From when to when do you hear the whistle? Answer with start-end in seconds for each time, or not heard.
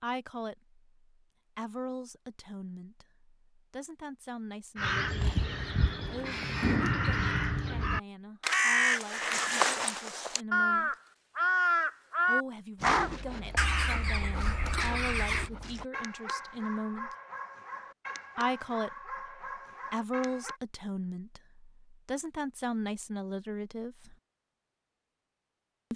not heard.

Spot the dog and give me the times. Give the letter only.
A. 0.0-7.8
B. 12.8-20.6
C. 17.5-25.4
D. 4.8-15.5
B.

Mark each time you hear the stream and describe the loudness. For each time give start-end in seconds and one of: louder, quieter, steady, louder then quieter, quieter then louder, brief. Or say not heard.
not heard.